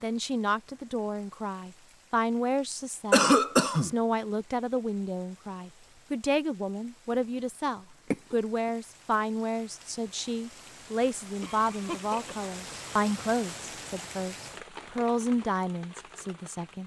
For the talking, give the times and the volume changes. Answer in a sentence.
You can hear the talking from 0.0 to 16.8 s, at a steady volume.